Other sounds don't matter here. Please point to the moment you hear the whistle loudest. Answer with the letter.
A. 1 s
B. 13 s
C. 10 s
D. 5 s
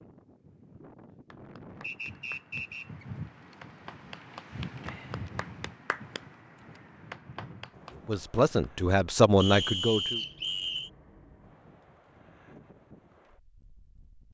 C.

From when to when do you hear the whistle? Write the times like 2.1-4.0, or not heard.
1.8-3.0, 9.4-10.9.